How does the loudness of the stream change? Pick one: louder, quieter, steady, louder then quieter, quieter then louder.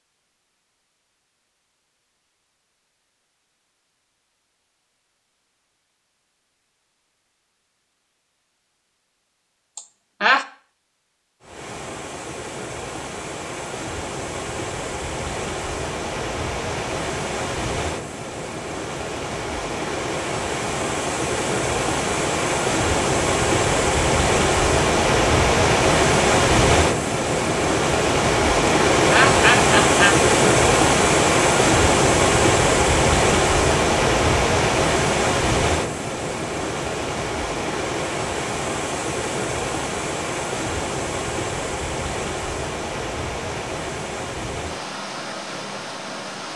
louder then quieter.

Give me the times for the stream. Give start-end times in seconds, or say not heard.
11.4-46.5.